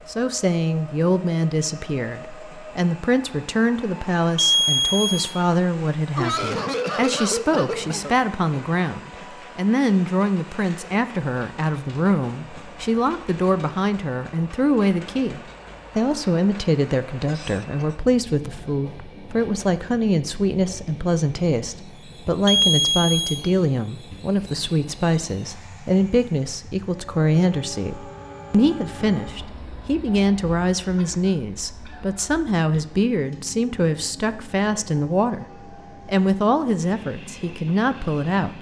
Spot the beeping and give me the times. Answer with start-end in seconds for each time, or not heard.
4.3-5.3, 22.4-23.4, 32.7-33.4.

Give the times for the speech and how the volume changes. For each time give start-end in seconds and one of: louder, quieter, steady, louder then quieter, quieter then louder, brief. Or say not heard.
0.1-35.5 steady
36.0-38.5 brief.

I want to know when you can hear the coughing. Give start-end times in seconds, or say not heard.
6.2-8.2, 17.2-18.0, 30.9-32.2.